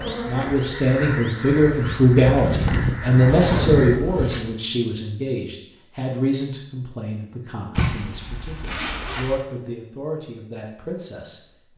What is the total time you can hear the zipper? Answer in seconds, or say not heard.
3 s.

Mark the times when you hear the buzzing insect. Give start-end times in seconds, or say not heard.
0.0-4.5.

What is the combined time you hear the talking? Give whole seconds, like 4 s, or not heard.
12 s.